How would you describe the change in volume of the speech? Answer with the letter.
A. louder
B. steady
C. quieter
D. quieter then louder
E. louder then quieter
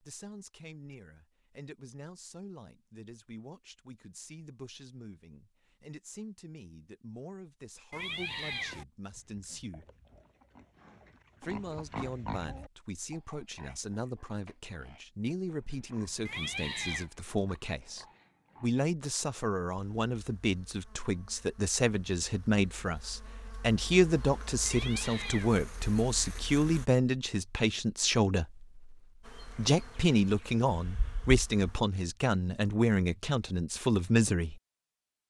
A.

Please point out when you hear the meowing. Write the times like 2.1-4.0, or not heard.
7.9-8.8, 16.2-17.1, 24.6-25.6.